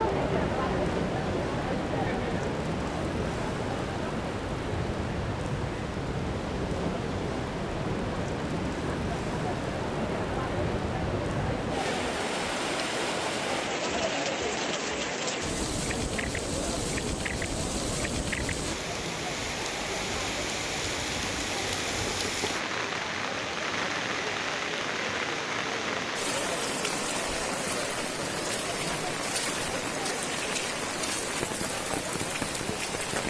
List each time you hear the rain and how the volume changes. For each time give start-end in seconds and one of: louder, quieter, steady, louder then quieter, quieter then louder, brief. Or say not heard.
0.0-33.2 steady.